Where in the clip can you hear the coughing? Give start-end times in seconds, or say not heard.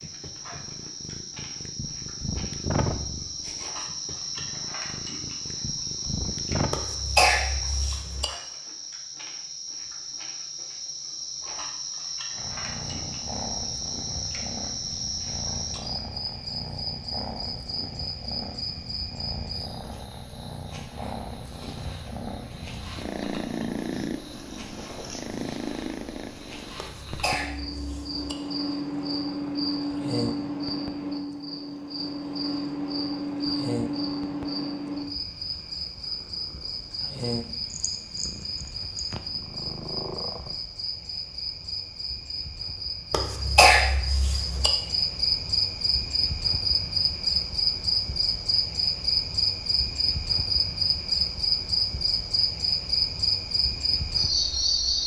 6.7-8.2, 26.8-28.4, 43.1-44.7.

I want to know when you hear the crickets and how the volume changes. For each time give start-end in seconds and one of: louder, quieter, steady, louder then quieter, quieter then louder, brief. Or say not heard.
0.0-55.0 louder.